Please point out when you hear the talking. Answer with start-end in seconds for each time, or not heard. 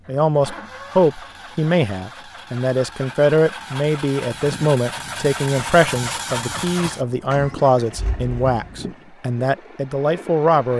0.1-10.7.